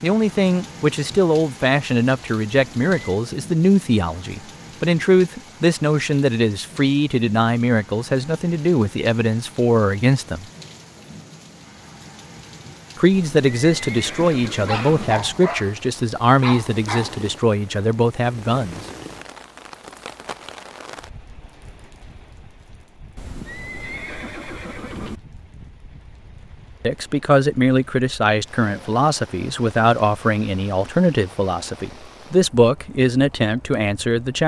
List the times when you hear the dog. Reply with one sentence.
The dog can be heard from 14.7 to 17.3 s.